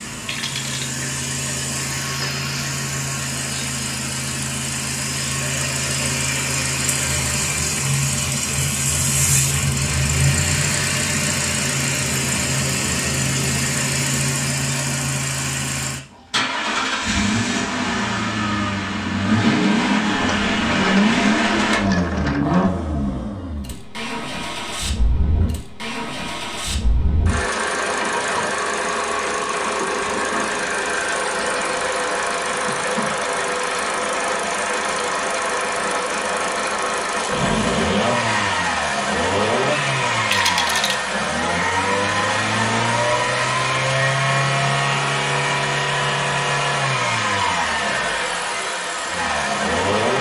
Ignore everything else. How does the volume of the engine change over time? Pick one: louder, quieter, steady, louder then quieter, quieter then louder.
steady.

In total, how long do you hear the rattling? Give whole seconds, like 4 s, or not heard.
4 s.